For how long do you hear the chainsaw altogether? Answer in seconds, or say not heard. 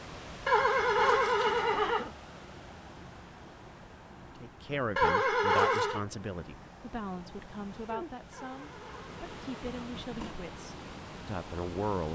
not heard.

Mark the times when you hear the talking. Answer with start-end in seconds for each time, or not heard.
4.3-12.1.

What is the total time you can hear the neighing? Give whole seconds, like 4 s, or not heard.
5 s.